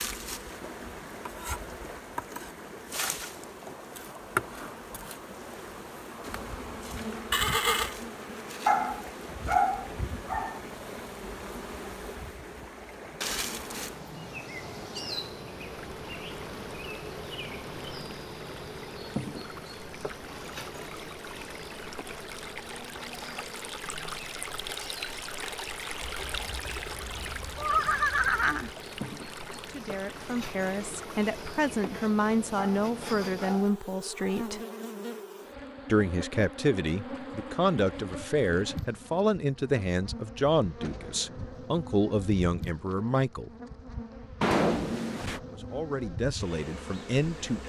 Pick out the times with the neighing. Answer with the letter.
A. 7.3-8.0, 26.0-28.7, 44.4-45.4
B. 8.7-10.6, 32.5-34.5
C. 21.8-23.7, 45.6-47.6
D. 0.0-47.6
A.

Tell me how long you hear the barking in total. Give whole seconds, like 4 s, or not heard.
4 s.